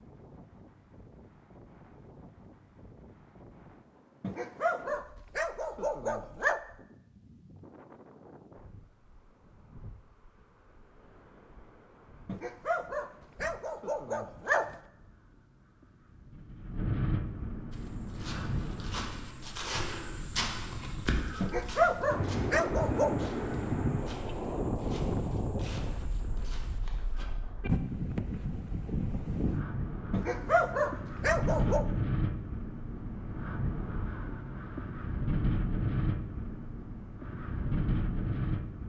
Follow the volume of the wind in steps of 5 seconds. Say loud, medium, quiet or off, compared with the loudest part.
quiet, quiet, quiet, medium, loud, loud, loud, loud.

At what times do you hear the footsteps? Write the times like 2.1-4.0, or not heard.
17.7-27.3.